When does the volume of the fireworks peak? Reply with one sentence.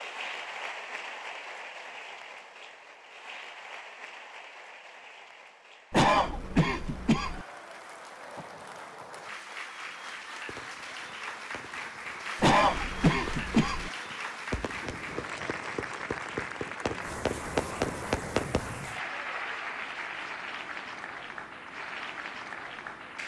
The loudest moment of the fireworks is at 18 seconds.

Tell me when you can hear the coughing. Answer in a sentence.
The coughing can be heard from 5.9 to 7.5 s and from 12.4 to 13.9 s.